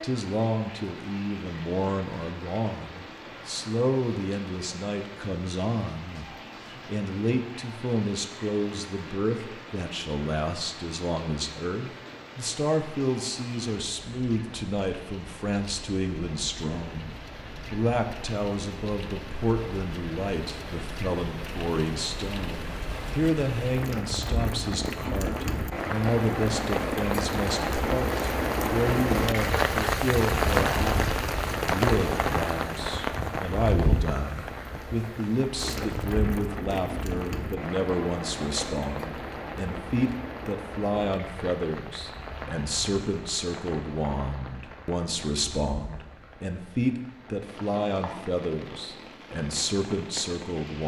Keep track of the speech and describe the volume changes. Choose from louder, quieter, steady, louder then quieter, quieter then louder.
steady.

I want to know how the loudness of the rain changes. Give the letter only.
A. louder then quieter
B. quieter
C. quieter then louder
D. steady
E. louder
A.